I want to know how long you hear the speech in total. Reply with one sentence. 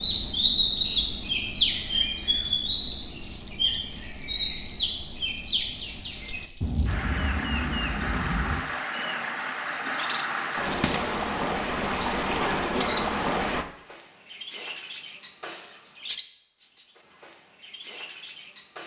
The speech can't be heard in this clip.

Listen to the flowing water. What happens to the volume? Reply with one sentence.
The loudness of the flowing water goes up.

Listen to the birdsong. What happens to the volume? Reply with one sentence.
The volume of the birdsong goes down.